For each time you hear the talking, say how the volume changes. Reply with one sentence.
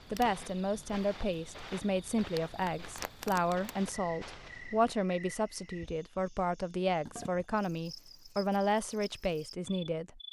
The talking can be heard from 0.1 to 10.2 s, at a steady volume.